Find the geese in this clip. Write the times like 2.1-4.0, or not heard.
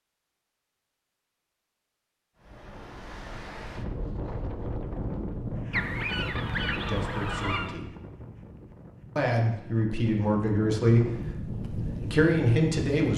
5.7-7.8.